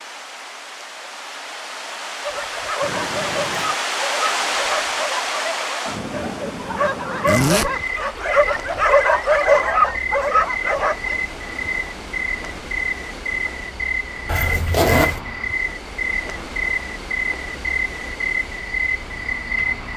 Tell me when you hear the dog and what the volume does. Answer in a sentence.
You can hear the dog from 2.2 to 11.2 s, getting louder.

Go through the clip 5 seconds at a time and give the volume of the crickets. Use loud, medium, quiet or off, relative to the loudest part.
off, loud, loud, loud.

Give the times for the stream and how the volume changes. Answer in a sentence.
You can hear the stream from 0.0 to 19.9 s, getting quieter.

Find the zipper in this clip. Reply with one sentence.
The zipper can be heard from 2.8 to 3.8 s, from 7.2 to 7.7 s and from 14.2 to 15.2 s.